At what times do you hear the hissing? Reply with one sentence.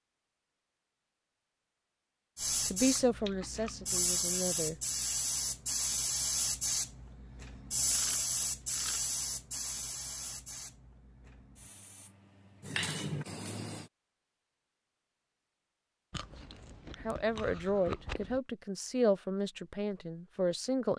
You can hear the hissing from 2.4 to 13.9 s.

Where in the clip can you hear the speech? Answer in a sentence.
The speech can be heard from 2.6 to 4.8 s and from 17.0 to 20.9 s.